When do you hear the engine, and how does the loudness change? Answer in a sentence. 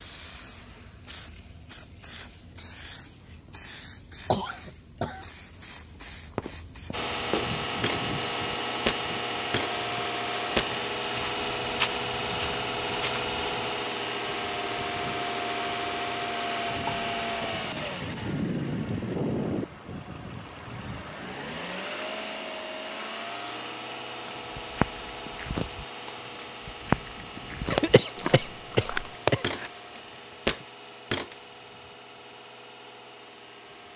You can hear the engine from 6.9 to 33.9 s, getting quieter.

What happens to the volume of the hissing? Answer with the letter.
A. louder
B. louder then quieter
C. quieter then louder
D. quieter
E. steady
E.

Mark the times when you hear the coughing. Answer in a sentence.
You can hear the coughing from 4.3 to 5.3 s, from 16.9 to 17.4 s and from 27.7 to 29.7 s.